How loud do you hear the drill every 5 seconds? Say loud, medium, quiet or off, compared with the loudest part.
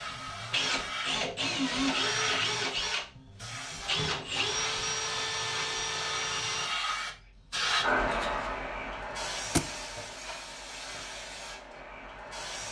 loud, loud, off.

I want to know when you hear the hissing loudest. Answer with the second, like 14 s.
8 s.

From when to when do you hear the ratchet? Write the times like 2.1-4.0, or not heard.
not heard.